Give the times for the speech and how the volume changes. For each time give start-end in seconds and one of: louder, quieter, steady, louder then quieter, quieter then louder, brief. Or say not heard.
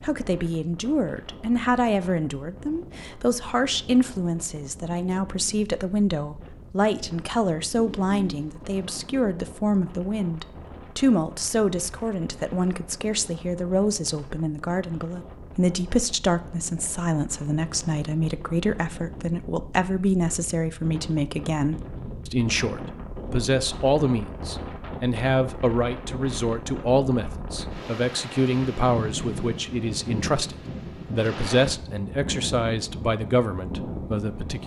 0.0-34.6 steady.